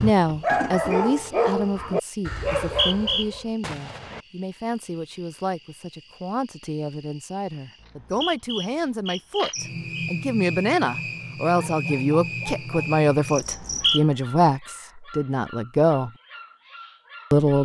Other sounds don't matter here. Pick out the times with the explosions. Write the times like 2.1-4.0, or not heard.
3.6-4.2.